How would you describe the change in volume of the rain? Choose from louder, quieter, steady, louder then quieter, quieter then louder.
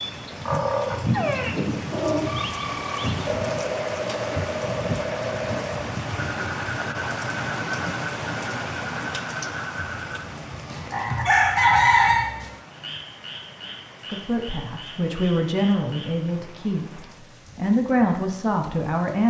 quieter.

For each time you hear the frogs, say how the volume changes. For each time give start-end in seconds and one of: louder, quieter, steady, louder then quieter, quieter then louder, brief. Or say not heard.
0.0-16.3 quieter.